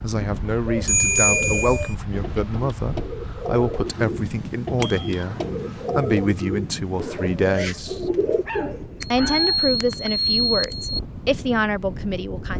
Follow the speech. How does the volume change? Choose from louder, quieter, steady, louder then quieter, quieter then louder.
steady.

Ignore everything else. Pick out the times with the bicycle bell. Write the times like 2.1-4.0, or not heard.
0.8-1.9, 4.8-5.2, 9.0-11.0.